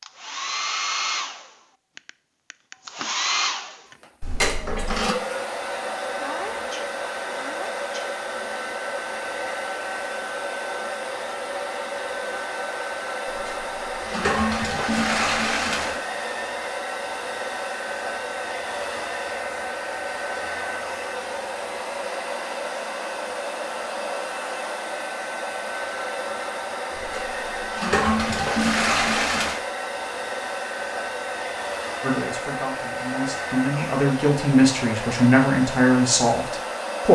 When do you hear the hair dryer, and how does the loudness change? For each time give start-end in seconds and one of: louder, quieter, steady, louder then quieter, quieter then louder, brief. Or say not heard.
0.0-37.1 steady.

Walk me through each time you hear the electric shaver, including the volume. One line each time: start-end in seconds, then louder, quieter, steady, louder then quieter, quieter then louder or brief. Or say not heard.
not heard.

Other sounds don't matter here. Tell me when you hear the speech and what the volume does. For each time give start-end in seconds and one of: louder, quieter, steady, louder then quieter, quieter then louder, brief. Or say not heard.
32.0-37.1 louder.